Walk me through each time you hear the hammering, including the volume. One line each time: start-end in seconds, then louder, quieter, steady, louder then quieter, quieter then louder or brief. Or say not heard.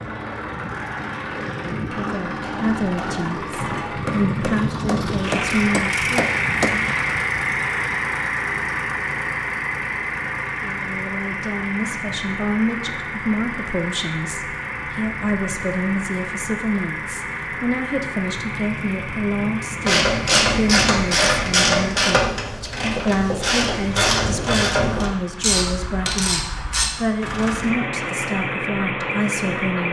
1.8-6.8 louder.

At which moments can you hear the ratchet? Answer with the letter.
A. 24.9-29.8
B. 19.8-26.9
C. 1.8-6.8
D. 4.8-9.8
B.